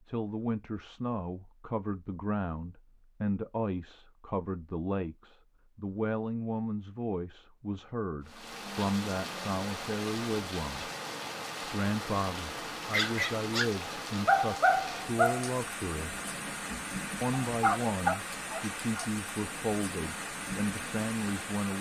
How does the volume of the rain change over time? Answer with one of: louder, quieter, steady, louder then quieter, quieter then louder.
steady.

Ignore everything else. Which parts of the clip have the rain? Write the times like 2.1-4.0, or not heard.
8.2-21.7.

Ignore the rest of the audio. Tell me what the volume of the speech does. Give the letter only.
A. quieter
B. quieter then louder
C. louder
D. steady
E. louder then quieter
D.